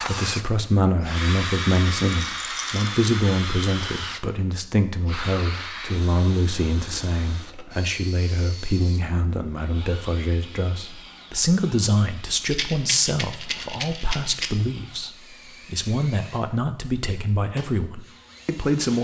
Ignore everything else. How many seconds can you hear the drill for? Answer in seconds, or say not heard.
19 s.